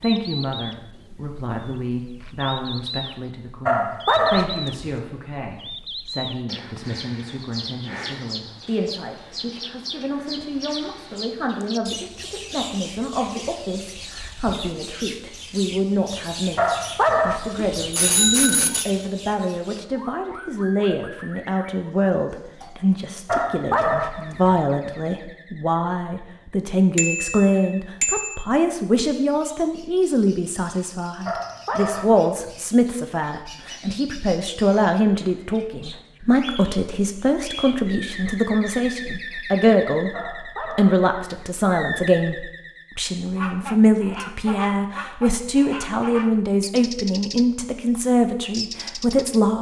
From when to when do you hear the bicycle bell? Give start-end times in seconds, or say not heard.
17.8-18.9, 26.9-28.4.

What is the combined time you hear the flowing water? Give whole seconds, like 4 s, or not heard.
not heard.